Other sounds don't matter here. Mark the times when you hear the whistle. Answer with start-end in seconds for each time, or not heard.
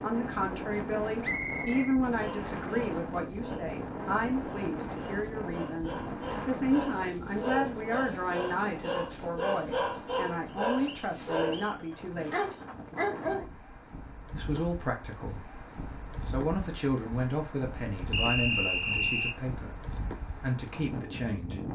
1.2-1.9, 10.4-11.8, 18.1-19.4.